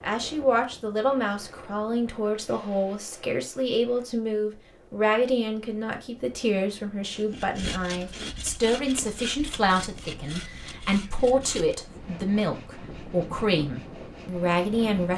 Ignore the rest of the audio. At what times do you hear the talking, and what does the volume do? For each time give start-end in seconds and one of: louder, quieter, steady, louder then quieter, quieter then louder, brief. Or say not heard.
0.0-15.1 steady.